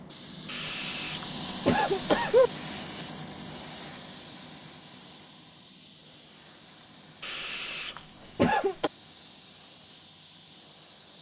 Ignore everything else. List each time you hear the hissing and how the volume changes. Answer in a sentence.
You can hear the hissing from 0.0 to 11.1 s, getting quieter.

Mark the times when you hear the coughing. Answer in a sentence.
The coughing can be heard from 0.5 to 2.5 s and from 7.2 to 8.9 s.